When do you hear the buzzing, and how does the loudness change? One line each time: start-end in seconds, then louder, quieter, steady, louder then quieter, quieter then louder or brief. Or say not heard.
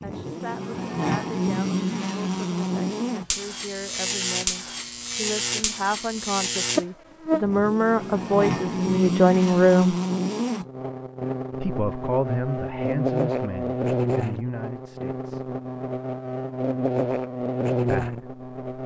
0.0-18.8 steady.